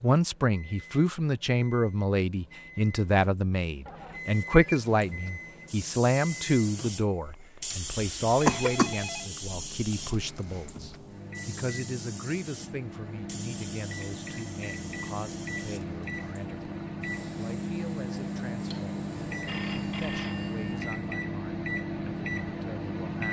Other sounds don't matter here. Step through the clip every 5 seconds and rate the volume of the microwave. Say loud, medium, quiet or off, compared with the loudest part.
quiet, quiet, medium, loud, loud.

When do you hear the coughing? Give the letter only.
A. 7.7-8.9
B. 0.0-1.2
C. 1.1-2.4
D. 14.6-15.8
A.